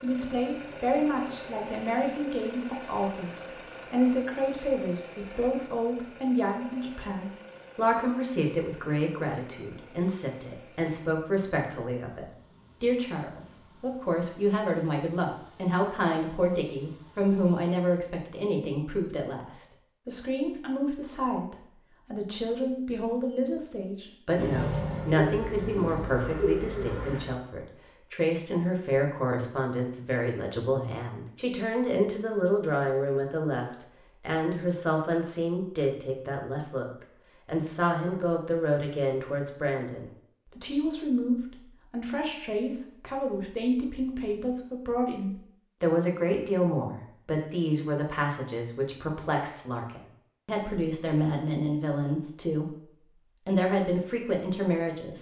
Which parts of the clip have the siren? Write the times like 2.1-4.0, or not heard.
not heard.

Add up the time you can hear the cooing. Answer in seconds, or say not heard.
3 s.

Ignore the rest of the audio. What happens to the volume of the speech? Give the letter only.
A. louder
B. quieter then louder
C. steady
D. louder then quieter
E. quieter
C.